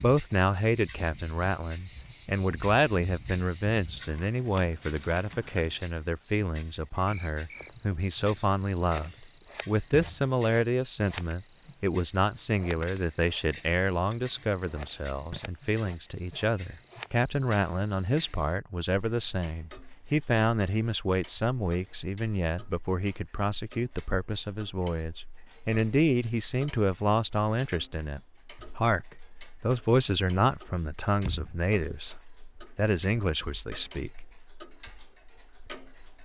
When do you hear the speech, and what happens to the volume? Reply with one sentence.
The speech can be heard from 0.0 to 34.2 s, at a steady volume.